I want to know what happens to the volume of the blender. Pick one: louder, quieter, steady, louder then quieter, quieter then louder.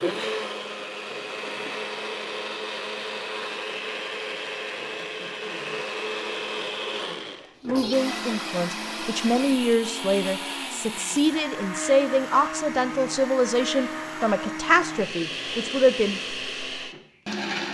steady.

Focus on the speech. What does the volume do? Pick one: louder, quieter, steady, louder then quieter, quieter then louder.
steady.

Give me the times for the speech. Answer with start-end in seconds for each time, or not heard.
7.7-16.2.